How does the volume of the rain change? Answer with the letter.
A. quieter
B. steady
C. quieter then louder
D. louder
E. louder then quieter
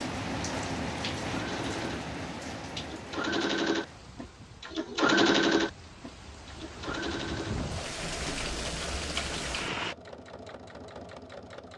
C.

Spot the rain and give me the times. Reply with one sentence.
You can hear the rain from 0.0 to 9.9 s.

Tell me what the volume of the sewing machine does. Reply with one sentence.
The loudness of the sewing machine goes up, then down.